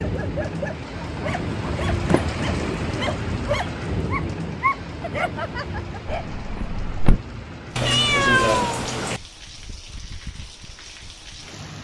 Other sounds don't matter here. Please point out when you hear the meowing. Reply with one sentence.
You can hear the meowing from 7.8 to 9.2 s.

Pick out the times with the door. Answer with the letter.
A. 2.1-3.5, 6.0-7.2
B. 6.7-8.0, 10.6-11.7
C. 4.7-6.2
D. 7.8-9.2
A.